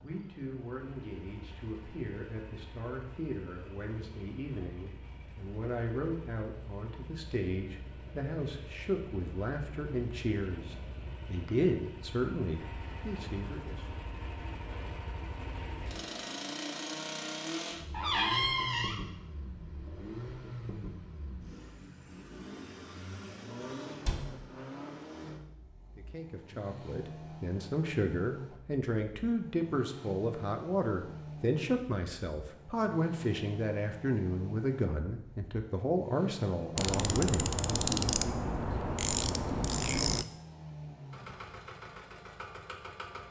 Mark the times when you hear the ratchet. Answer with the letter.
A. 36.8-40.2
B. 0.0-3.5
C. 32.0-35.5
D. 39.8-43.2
A.